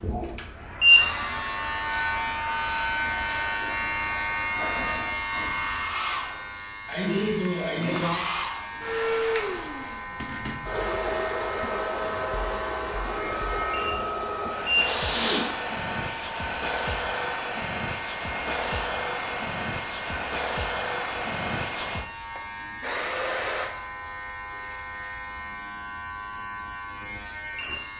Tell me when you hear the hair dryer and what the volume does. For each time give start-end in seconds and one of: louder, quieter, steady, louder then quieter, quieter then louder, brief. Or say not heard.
0.0-23.8 louder.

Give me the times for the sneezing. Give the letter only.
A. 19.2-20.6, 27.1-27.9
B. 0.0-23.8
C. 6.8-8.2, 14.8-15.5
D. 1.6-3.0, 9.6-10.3
C.